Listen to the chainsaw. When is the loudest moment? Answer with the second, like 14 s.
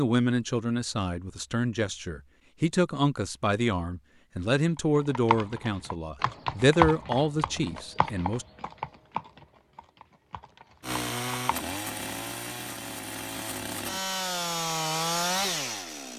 15 s.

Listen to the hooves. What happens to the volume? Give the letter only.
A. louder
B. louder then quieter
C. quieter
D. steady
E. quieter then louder
B.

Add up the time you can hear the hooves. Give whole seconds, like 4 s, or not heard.
7 s.